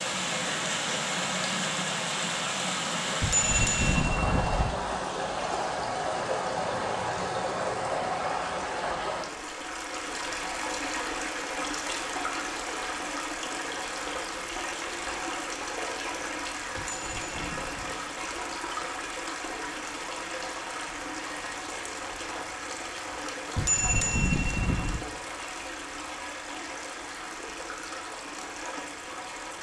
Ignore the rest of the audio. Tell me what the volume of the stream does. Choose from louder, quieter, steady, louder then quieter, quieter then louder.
quieter.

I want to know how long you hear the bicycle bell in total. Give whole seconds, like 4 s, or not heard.
4 s.